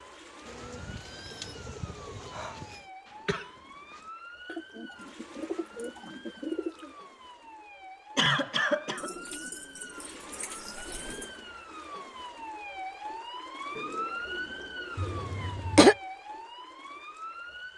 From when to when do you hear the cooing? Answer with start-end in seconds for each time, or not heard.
0.5-2.9, 4.5-7.0, 8.9-11.3, 13.8-15.4.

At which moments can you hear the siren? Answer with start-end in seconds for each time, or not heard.
0.0-17.7.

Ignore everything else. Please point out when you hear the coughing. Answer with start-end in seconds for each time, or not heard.
3.2-4.0, 8.2-9.1, 14.9-15.9.